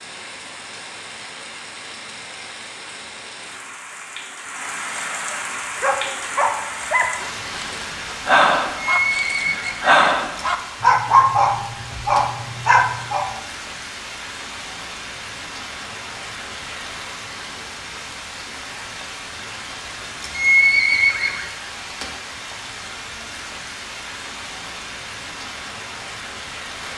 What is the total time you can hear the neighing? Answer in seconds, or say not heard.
2 s.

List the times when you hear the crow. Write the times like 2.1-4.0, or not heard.
not heard.